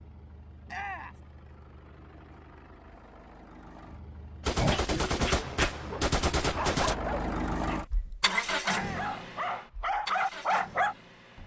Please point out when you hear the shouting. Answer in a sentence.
The shouting can be heard from 0.7 to 1.2 s and from 8.7 to 9.1 s.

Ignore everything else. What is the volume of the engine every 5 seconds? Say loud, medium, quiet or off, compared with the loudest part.
quiet, loud, medium.